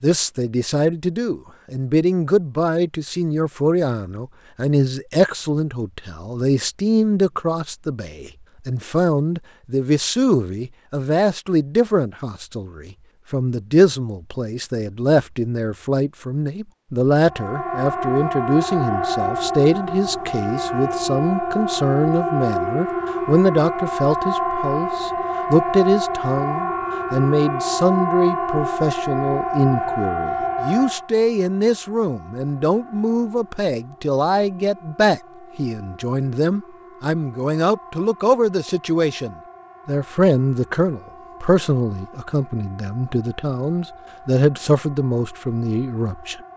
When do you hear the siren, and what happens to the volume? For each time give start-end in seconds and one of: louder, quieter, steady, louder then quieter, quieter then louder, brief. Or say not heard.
17.2-46.5 quieter.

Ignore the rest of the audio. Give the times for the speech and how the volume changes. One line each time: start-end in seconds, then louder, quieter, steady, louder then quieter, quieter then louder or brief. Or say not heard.
0.0-46.4 steady.